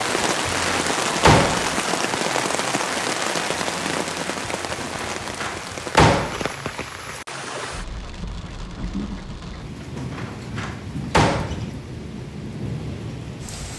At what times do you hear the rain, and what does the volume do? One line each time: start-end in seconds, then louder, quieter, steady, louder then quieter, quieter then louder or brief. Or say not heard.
0.0-13.7 quieter.